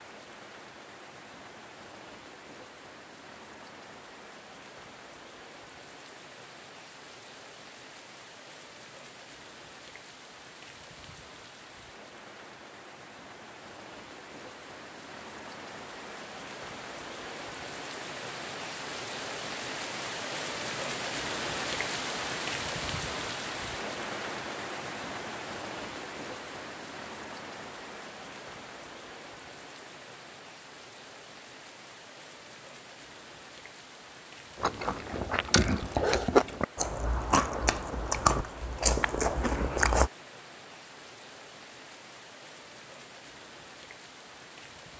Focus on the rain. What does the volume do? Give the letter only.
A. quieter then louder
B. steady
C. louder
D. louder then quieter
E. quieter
D.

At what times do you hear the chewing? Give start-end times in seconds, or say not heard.
34.6-40.1.